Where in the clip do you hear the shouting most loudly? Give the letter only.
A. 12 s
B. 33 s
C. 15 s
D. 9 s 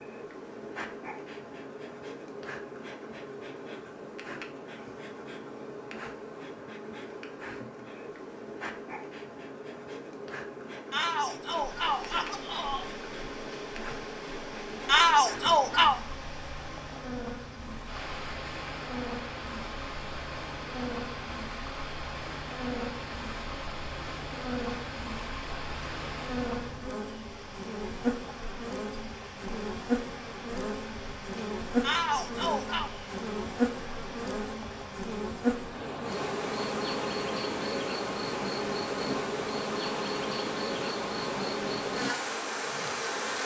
C.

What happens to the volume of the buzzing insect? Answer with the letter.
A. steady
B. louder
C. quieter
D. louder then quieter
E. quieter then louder
B.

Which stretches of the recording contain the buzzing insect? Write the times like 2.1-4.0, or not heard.
0.0-43.4.